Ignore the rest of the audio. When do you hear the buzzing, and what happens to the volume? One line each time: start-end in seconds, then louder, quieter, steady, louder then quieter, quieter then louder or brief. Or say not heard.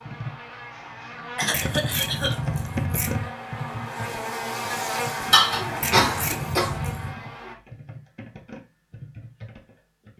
0.0-7.5 louder then quieter.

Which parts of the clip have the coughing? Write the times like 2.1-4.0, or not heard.
1.4-2.4, 5.3-6.8.